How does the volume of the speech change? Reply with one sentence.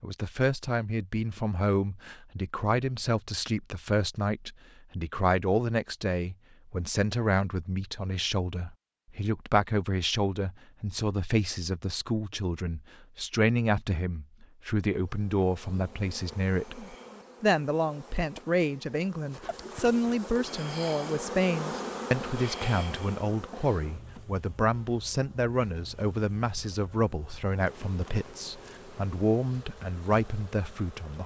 The loudness of the speech stays about the same.